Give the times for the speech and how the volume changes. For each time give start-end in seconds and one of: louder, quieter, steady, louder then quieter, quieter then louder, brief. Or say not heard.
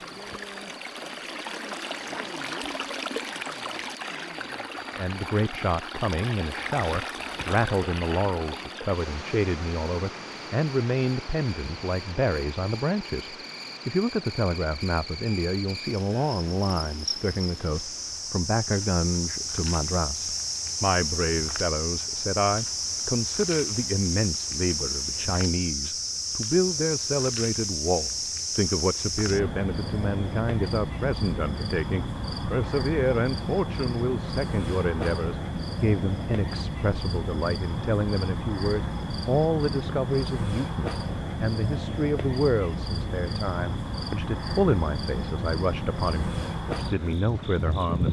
5.0-48.0 steady.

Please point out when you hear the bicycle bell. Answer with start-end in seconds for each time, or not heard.
not heard.